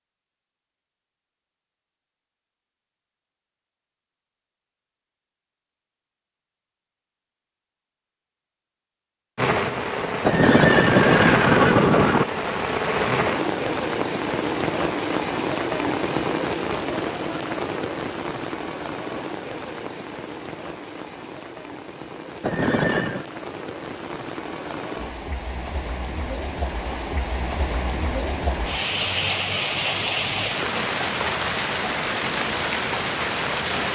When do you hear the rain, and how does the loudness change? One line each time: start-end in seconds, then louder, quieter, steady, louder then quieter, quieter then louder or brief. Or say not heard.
9.3-33.9 quieter then louder.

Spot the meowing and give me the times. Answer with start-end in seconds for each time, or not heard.
not heard.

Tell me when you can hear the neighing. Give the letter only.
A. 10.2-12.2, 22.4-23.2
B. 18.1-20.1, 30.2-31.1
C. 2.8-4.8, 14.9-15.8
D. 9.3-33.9
A.